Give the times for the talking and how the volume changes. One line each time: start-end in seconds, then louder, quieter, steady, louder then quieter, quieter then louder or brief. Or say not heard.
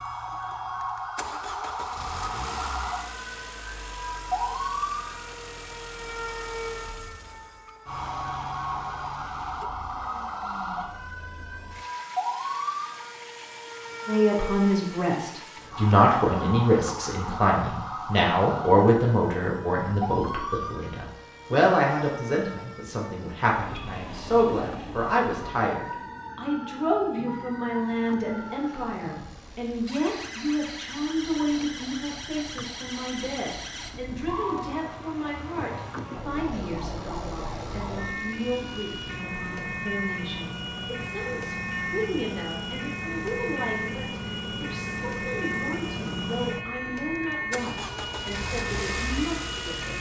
14.1-49.9 quieter.